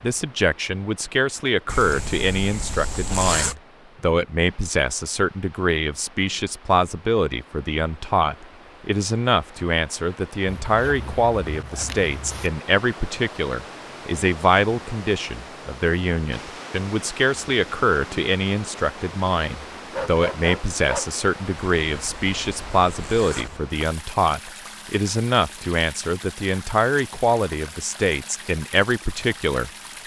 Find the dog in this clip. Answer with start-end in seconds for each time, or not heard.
19.9-21.1.